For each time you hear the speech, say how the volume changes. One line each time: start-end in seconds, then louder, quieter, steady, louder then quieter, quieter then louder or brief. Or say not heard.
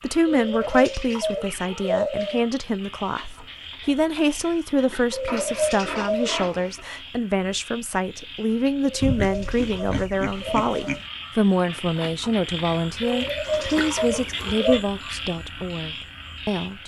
0.0-16.8 steady.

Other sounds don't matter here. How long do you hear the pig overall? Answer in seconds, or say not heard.
4 s.